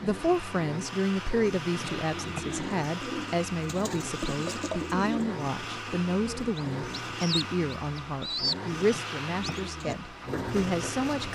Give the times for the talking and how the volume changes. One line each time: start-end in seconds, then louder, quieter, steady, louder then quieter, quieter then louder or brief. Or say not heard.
0.0-11.3 steady.